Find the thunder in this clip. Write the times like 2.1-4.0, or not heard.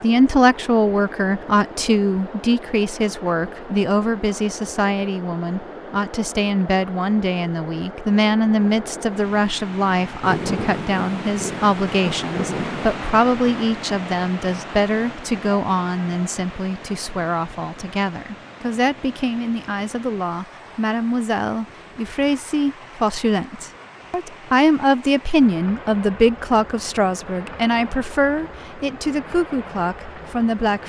10.2-13.1.